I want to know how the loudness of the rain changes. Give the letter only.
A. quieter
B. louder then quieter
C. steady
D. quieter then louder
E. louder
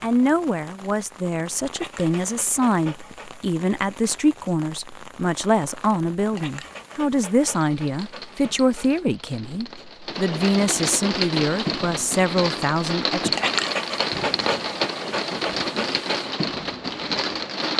E.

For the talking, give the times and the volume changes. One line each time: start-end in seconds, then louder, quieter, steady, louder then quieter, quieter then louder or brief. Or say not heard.
0.0-13.4 steady.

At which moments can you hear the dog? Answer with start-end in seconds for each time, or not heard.
1.7-3.5, 6.3-9.1, 13.3-16.3.